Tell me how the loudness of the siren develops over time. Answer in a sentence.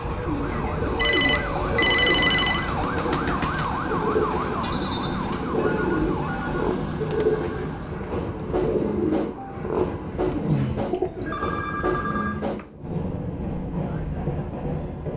The loudness of the siren goes down.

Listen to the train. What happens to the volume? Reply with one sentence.
The volume of the train stays about the same.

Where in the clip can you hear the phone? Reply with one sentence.
The phone can be heard from 0.9 to 2.7 s, from 5.5 to 7.2 s and from 10.2 to 12.7 s.